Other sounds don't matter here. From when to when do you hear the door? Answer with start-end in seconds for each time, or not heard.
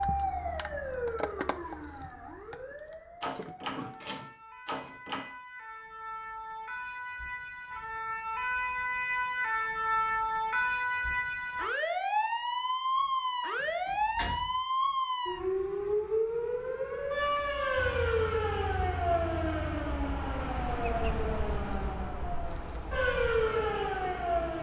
3.2-5.2, 13.6-14.6.